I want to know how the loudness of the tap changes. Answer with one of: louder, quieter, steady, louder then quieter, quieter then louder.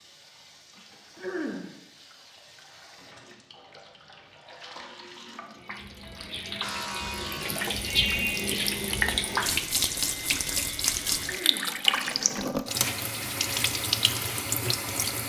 louder.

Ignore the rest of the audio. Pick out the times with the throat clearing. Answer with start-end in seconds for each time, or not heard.
1.1-1.7, 11.2-11.8.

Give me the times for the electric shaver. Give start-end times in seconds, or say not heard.
6.6-11.7.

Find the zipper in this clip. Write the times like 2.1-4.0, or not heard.
not heard.